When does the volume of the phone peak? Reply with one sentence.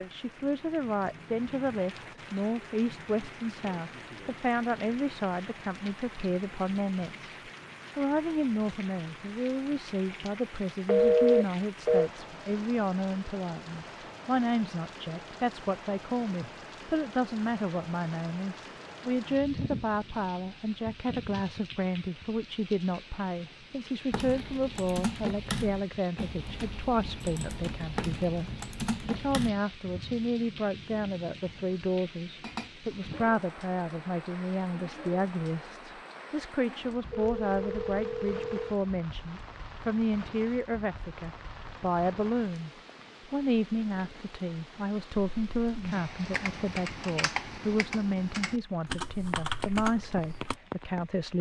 The volume of the phone peaks at 11 seconds.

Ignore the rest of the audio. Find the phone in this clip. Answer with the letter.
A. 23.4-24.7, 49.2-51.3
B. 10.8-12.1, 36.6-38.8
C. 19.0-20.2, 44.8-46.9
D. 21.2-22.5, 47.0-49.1
B.